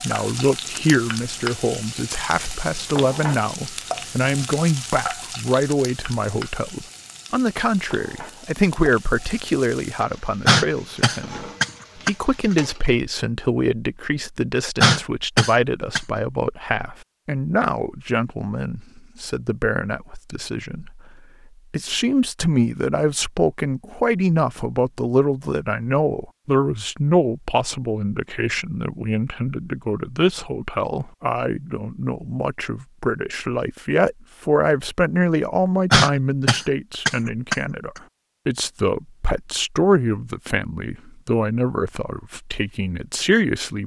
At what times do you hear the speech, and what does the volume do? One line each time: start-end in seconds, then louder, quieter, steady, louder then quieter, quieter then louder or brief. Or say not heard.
0.0-21.0 steady
21.7-43.8 steady.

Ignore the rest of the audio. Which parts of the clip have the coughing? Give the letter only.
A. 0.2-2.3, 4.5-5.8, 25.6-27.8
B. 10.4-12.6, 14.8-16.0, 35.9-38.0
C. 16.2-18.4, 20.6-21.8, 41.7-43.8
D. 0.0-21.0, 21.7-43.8
B.